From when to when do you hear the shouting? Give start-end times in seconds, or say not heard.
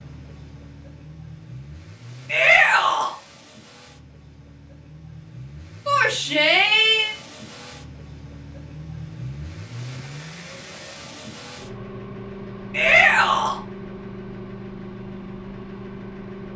2.2-3.1, 5.8-7.2, 12.7-13.6.